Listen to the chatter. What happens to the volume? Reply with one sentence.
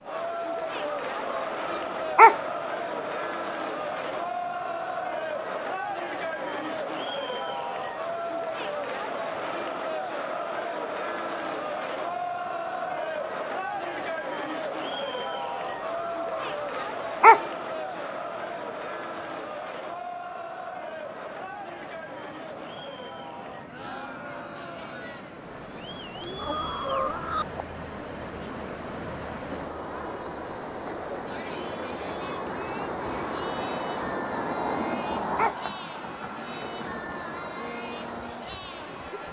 The volume of the chatter goes down.